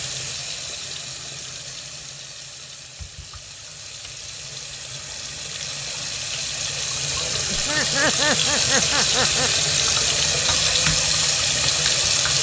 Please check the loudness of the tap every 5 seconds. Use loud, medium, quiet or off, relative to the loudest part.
quiet, loud, loud.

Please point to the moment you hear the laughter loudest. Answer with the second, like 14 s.
8 s.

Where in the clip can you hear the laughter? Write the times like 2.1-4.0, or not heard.
7.5-9.5.